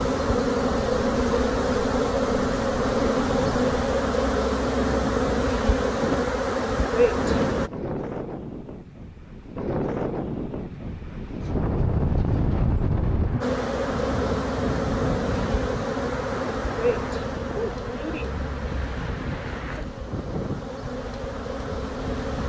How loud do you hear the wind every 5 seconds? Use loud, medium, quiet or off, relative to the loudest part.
medium, loud, loud, medium, medium.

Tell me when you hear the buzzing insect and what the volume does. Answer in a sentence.
The buzzing insect can be heard from 0.0 to 7.7 s, at a steady volume; and from 13.4 to 22.4 s, getting quieter.